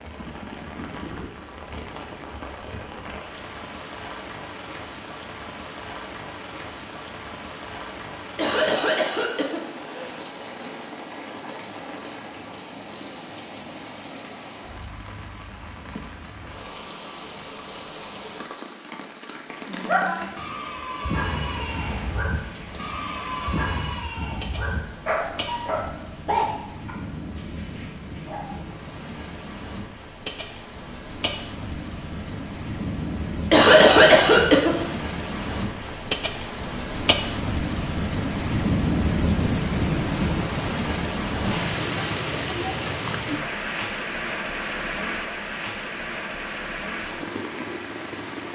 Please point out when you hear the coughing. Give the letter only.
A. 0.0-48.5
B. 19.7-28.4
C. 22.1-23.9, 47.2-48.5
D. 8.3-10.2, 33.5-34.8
D.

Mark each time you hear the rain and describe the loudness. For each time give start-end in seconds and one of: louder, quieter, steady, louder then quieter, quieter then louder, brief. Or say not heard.
0.0-48.5 louder.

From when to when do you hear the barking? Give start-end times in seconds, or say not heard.
19.7-28.4.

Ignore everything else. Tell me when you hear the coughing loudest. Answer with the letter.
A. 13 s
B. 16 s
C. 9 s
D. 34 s
D.